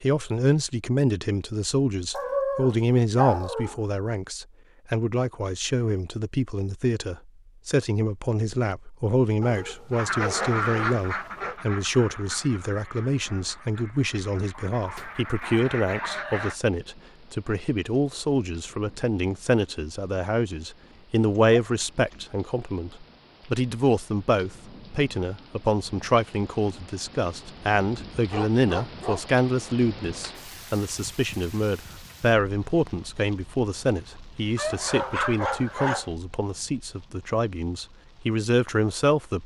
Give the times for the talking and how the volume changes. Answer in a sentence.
You can hear the talking from 0.0 to 39.4 s, at a steady volume.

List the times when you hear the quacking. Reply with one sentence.
The quacking can be heard from 9.9 to 16.6 s.